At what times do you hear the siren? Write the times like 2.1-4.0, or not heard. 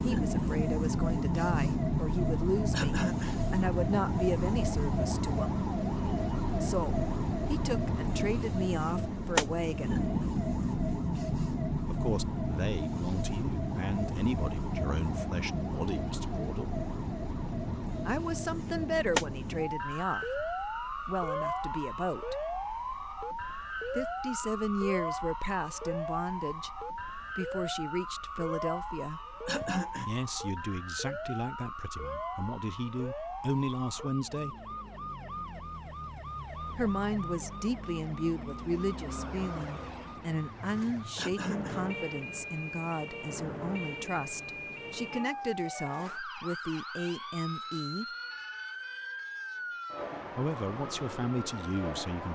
0.0-52.3.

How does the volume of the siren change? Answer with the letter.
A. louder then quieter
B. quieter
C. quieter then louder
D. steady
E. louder
B.